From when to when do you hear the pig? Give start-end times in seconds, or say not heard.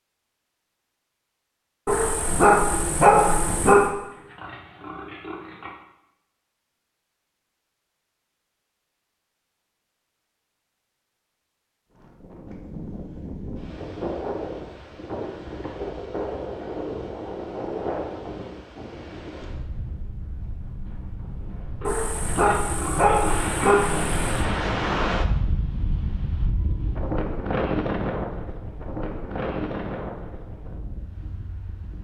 3.9-5.8, 21.8-23.7.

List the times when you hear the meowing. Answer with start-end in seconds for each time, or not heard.
not heard.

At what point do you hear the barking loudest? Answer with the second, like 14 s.
3 s.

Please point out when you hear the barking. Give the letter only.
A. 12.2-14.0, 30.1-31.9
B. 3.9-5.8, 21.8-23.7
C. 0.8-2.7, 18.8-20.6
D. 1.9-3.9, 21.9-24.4
D.